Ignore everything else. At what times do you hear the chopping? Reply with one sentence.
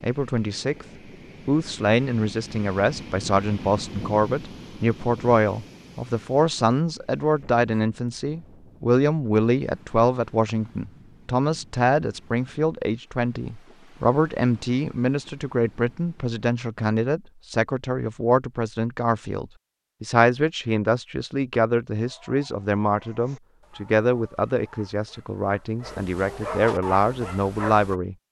You can't hear the chopping here.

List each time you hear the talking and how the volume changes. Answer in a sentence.
The talking can be heard briefly from 0.0 to 0.8 s; and from 1.4 to 28.2 s, at a steady volume.